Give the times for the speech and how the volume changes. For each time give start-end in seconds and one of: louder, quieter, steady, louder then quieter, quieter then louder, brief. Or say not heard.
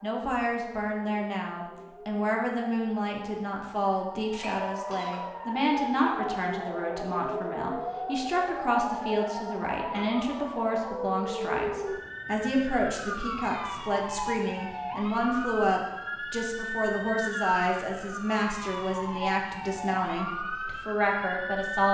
0.0-21.8 steady.